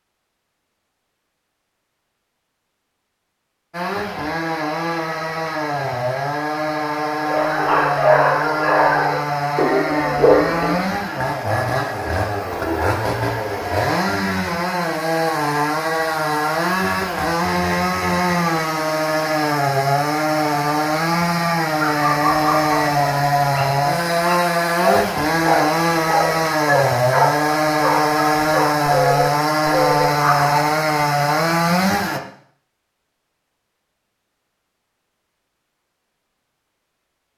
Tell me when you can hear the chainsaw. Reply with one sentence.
You can hear the chainsaw from 3.7 to 32.2 s.